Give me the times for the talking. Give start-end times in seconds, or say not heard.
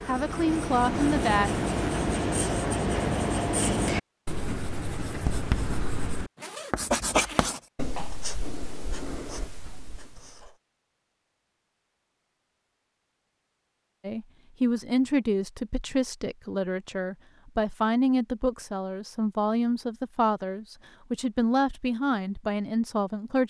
0.1-1.6, 14.0-23.4.